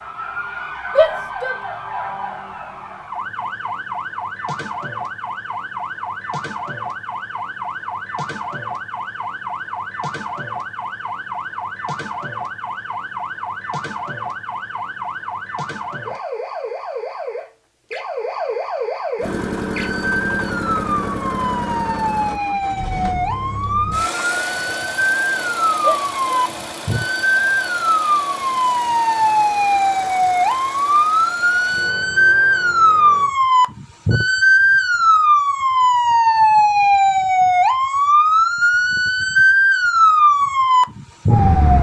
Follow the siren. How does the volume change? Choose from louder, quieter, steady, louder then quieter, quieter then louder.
louder.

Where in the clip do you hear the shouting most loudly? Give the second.
1 s.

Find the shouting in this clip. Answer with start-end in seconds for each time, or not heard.
0.9-1.6, 25.8-26.4.